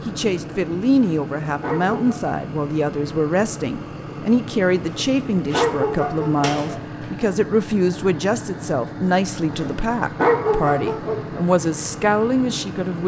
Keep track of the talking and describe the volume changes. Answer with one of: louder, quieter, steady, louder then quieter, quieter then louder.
steady.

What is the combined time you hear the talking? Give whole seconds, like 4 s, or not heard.
13 s.